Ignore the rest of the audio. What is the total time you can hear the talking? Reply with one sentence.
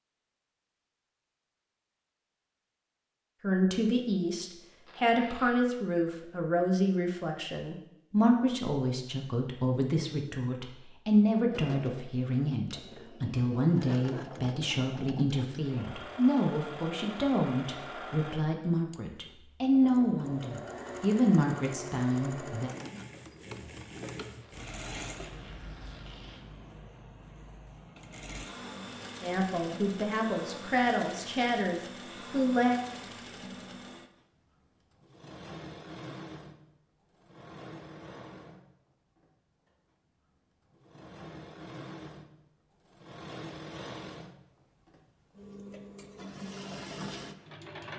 The talking can be heard for 23 seconds in total.